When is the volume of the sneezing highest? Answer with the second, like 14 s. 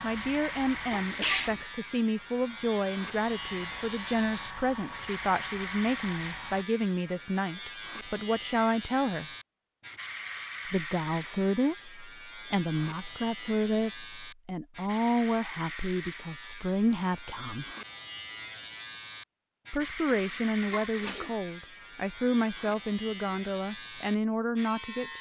1 s.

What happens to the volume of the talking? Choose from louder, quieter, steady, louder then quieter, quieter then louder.
steady.